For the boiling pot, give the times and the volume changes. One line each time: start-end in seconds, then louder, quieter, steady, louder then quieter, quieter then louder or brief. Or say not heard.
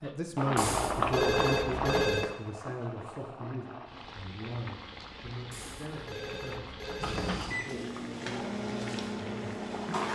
0.0-10.0 quieter.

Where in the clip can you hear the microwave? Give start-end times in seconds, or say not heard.
7.0-10.1.